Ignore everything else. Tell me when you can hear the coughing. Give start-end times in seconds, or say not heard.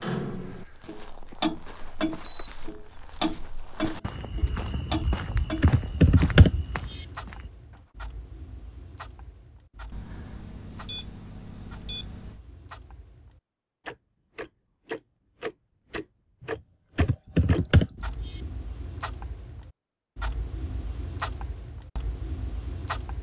not heard.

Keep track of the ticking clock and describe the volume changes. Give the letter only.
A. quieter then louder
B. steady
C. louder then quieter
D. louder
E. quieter
A.